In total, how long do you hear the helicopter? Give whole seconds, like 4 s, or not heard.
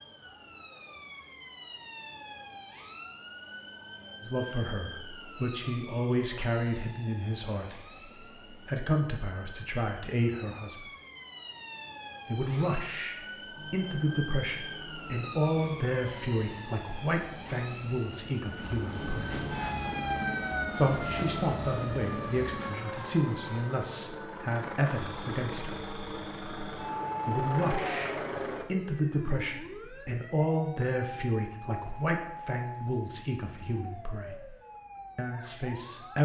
15 s.